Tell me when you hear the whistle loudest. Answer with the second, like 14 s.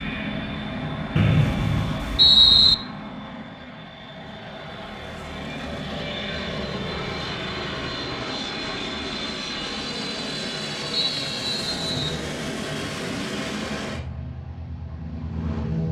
2 s.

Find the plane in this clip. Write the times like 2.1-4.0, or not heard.
0.0-15.8.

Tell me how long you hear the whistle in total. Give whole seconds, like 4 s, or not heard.
3 s.